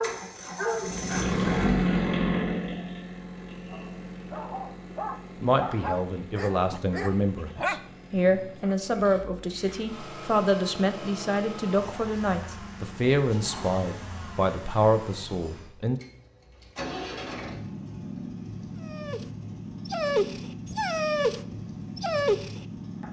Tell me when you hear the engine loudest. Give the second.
2 s.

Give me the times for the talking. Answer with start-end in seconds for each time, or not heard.
5.4-16.0.